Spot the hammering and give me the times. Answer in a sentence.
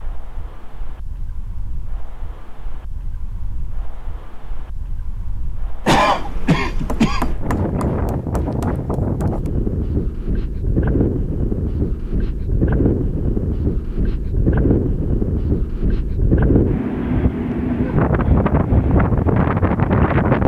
You can hear the hammering from 6.8 to 9.5 s.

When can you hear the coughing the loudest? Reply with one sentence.
The loudest moment of the coughing is at 6 seconds.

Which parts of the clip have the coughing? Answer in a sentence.
The coughing can be heard from 5.8 to 7.3 s.